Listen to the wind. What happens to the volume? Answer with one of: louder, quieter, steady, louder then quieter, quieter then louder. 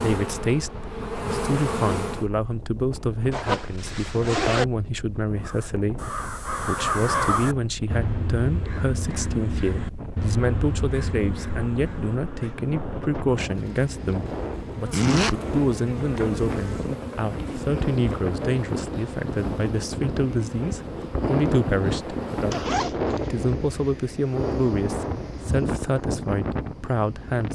louder.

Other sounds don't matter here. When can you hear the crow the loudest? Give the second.
7 s.